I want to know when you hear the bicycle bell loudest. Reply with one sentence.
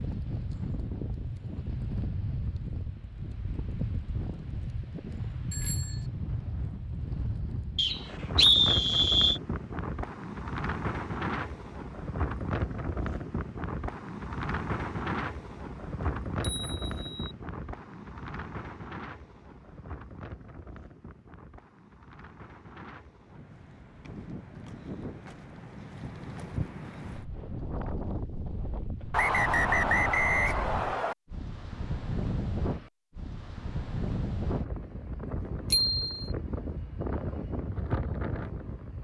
The volume of the bicycle bell peaks at 36 seconds.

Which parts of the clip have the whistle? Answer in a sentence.
You can hear the whistle from 7.8 to 9.4 s and from 29.1 to 31.1 s.